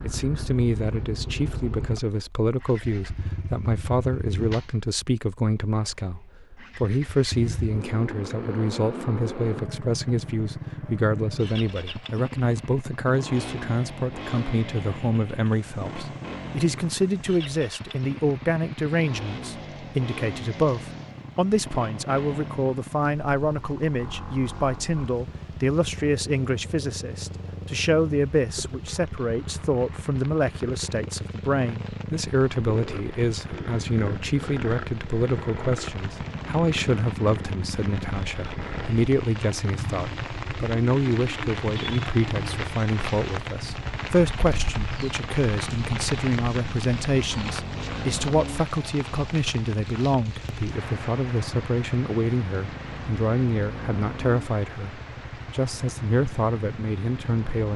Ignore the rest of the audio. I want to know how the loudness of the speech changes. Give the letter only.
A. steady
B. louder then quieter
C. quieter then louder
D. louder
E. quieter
A.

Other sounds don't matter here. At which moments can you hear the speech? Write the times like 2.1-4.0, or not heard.
0.0-57.7.